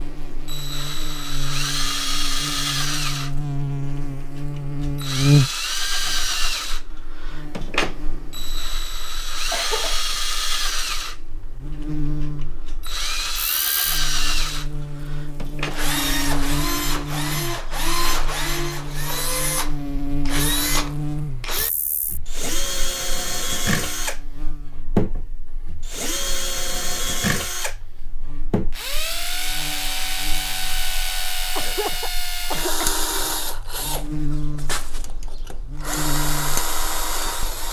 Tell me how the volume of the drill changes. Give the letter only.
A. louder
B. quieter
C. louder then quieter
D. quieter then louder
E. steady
E.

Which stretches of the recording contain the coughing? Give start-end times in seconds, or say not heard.
9.5-10.2, 31.6-33.0.